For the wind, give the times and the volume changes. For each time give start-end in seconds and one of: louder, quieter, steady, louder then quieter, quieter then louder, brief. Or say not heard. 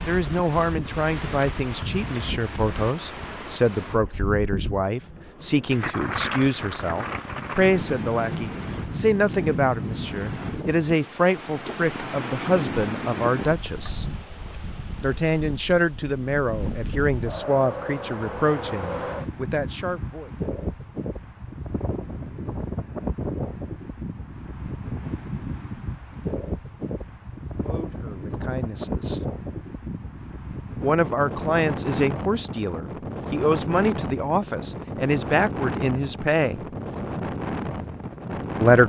0.0-38.8 steady.